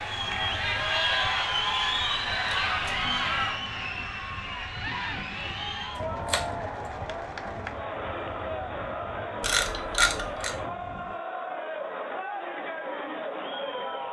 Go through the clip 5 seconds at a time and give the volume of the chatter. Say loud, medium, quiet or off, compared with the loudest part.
loud, medium, medium.